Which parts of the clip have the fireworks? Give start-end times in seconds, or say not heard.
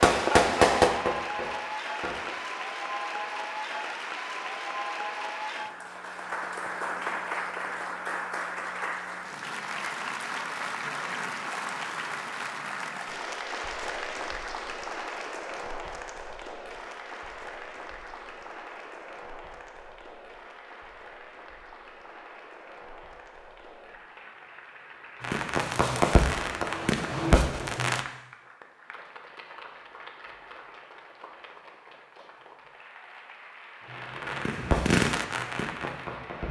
0.0-2.4, 25.2-28.1, 33.8-36.4.